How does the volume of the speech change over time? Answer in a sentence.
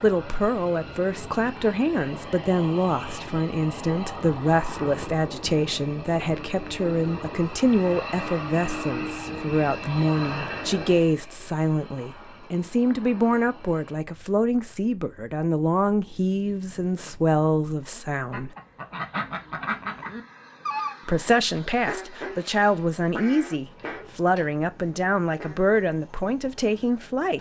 The loudness of the speech stays about the same.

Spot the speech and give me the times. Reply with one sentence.
The speech can be heard from 0.0 to 18.5 s and from 21.1 to 27.3 s.